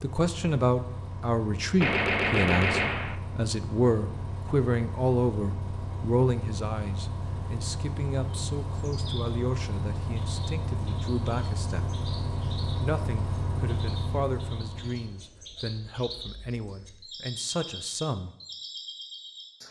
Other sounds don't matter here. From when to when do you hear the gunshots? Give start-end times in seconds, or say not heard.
1.8-3.1.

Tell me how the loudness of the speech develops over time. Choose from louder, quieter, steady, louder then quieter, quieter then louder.
quieter.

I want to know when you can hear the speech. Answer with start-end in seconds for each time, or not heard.
0.0-11.9, 12.8-18.4.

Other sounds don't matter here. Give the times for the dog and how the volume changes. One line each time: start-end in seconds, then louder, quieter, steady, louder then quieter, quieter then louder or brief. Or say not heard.
not heard.